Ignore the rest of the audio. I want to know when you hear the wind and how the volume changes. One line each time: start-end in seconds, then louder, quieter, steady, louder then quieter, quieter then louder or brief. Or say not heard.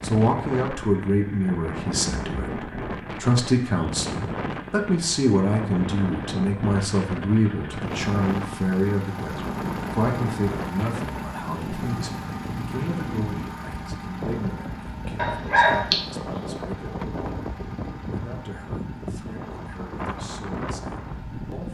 0.0-21.6 steady.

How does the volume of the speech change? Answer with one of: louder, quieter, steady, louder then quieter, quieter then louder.
quieter.